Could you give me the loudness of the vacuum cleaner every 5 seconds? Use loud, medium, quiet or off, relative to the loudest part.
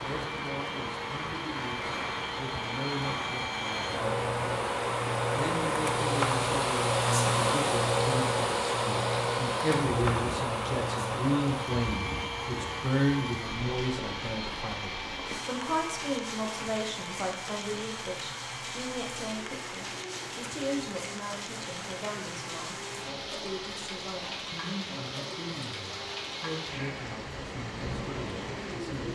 medium, loud, medium, quiet, quiet, quiet.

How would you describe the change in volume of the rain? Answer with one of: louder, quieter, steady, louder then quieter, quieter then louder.
steady.